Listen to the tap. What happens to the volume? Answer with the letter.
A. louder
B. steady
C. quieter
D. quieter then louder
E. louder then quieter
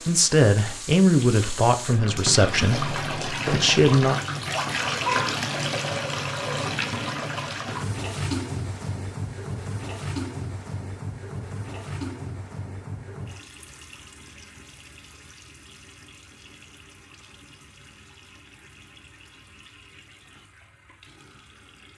C.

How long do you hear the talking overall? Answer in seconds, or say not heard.
4 s.